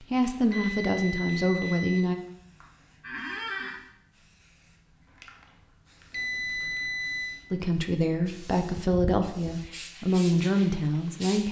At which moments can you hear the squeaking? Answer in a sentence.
You can hear the squeaking from 3.0 to 3.8 s and from 6.2 to 6.8 s.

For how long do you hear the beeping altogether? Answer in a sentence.
The beeping can be heard for 3 seconds in total.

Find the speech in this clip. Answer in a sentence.
The speech can be heard from 0.0 to 2.1 s and from 7.5 to 11.4 s.